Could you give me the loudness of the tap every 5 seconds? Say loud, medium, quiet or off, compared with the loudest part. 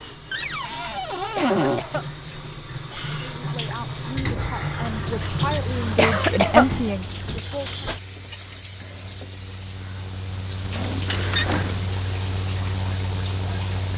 loud, loud, medium.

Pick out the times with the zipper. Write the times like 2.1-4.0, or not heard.
not heard.